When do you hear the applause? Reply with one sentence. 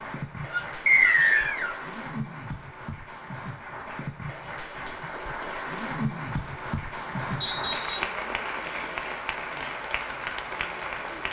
You can hear the applause from 0.0 to 11.2 s.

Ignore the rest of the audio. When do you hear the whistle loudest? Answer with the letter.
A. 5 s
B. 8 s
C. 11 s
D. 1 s
D.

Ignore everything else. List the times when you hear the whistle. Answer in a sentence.
You can hear the whistle from 0.8 to 1.6 s and from 7.4 to 8.1 s.